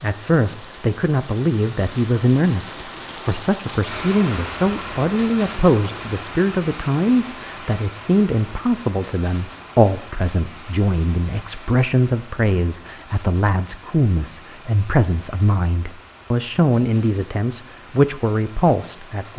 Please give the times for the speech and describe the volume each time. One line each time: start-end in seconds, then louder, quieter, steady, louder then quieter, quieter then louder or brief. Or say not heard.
0.0-19.3 steady.